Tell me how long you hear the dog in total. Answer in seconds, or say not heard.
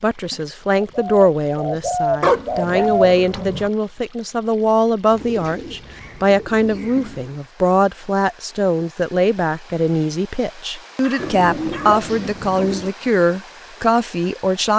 3 s.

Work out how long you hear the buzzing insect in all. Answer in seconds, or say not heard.
not heard.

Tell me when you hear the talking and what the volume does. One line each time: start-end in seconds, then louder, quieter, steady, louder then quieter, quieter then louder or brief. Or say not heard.
0.0-14.7 steady.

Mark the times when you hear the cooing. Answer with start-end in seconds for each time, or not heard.
0.3-2.9, 5.1-7.3, 11.2-12.9.